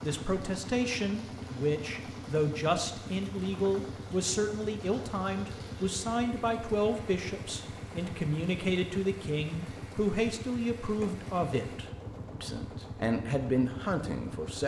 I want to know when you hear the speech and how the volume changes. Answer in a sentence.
You can hear the speech from 0.0 to 14.6 s, at a steady volume.